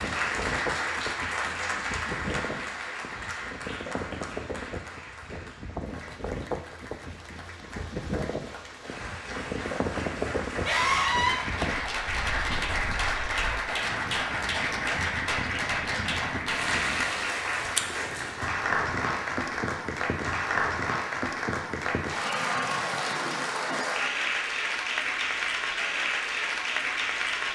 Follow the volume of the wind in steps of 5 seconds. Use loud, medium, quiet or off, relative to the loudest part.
loud, loud, loud, medium, off, off.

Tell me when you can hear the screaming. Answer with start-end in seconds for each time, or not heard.
10.7-11.4.